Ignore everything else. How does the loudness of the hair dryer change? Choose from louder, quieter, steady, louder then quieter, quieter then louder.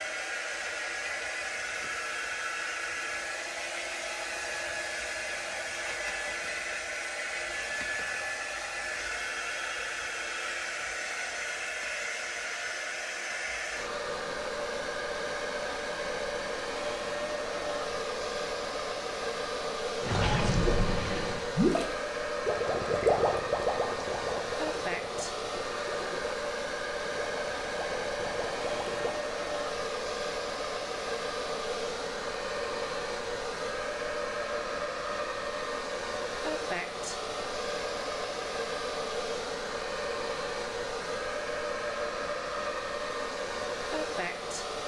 steady.